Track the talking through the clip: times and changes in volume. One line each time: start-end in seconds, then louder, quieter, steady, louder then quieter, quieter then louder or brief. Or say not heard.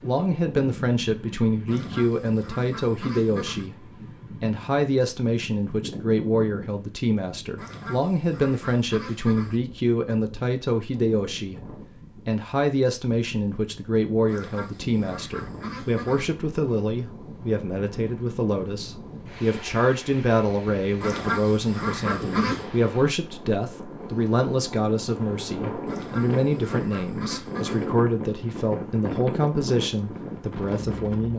0.0-31.3 steady.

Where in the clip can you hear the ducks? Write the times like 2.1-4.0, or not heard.
1.6-3.7, 7.5-9.6, 14.2-16.3, 21.0-22.6, 25.9-27.9.